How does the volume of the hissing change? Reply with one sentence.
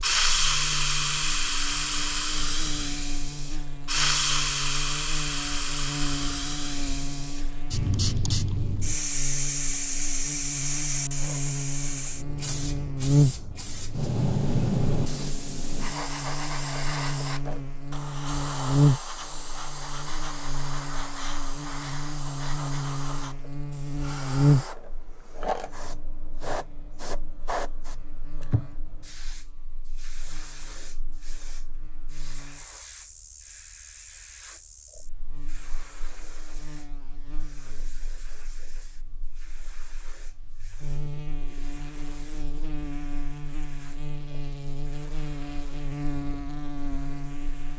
The loudness of the hissing goes down.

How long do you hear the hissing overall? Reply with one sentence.
You can hear the hissing for 48 seconds altogether.